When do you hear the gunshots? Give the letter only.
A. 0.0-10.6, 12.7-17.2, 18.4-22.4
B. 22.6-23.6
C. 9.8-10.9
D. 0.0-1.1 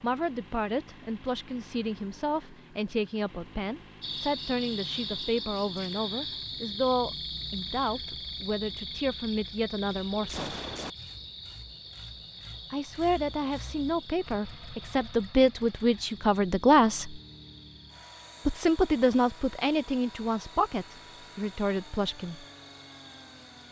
C.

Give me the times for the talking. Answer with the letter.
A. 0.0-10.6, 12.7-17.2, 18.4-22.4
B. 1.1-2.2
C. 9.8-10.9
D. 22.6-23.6
A.